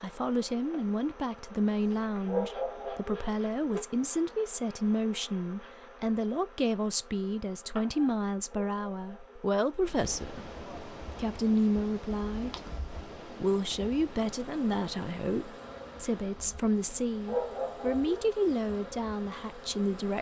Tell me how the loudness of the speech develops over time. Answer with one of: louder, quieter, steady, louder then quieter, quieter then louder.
steady.